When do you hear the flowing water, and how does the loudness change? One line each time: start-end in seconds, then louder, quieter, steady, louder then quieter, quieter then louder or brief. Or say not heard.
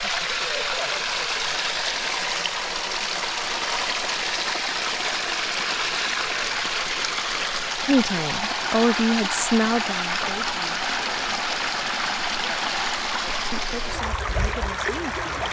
0.0-15.4 steady.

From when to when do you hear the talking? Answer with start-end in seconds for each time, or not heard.
7.8-11.3, 13.5-15.4.